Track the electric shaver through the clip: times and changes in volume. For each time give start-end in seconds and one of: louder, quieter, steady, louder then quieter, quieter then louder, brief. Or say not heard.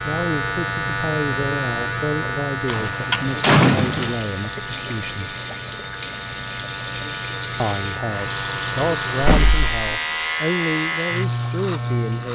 0.0-12.2 quieter then louder.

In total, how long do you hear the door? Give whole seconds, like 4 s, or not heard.
2 s.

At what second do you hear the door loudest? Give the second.
4 s.